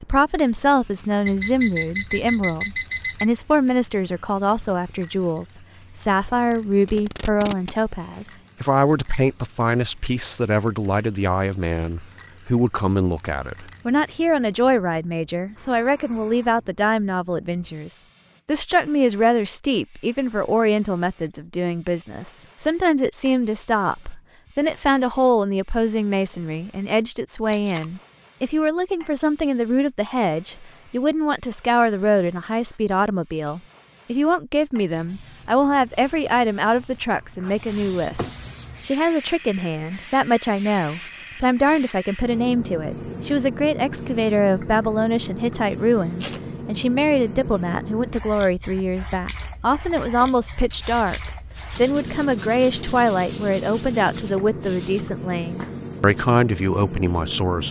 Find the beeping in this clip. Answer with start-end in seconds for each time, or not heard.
1.2-3.2.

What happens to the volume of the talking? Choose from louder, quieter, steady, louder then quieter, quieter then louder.
steady.